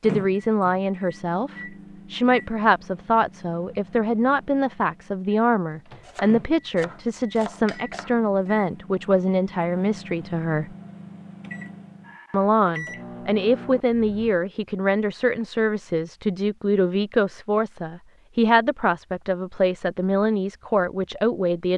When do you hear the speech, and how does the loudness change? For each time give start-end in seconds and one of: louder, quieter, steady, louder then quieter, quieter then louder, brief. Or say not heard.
0.0-10.8 steady
12.3-21.7 steady.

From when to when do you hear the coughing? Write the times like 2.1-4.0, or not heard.
not heard.